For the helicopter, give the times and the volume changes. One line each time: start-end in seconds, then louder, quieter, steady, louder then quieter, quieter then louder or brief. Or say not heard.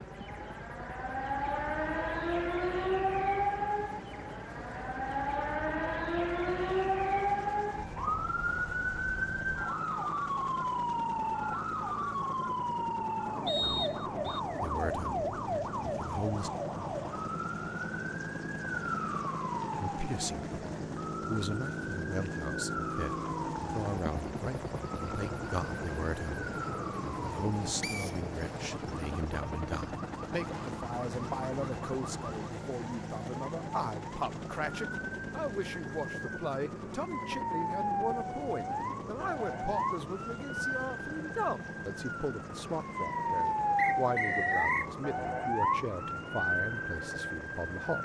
0.0-47.9 louder then quieter.